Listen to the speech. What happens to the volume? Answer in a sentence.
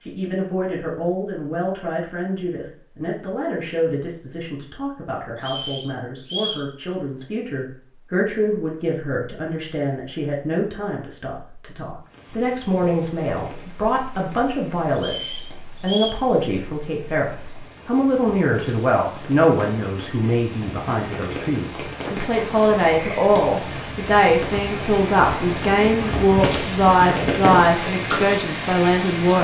The volume of the speech goes up.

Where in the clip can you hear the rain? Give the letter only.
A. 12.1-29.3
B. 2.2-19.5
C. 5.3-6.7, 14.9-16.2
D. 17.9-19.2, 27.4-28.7
A.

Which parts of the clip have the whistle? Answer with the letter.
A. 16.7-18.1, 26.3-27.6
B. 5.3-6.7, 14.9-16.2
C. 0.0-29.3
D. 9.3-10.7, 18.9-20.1
B.